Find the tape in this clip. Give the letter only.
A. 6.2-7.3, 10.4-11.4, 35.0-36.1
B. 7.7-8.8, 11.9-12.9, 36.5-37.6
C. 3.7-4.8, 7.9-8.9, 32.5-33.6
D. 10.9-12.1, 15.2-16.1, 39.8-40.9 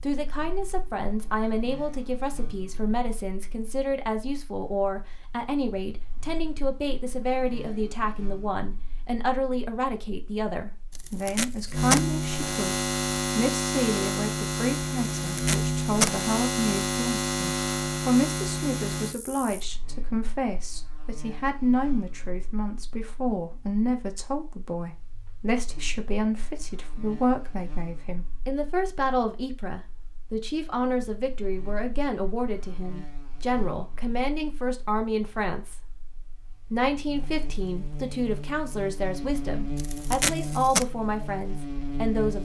D.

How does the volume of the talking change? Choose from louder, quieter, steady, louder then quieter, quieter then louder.
steady.